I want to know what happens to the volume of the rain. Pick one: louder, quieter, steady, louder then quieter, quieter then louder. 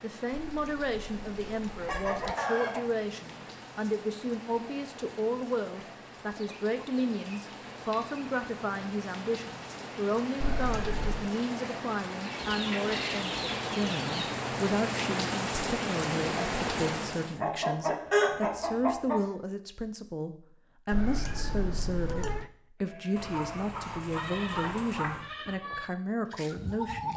louder.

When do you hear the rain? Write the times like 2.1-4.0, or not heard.
0.0-17.4.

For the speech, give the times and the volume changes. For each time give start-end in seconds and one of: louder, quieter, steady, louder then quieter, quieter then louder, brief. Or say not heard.
0.0-27.1 steady.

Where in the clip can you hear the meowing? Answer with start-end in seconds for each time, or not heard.
0.3-2.4, 10.4-11.3, 20.9-22.5.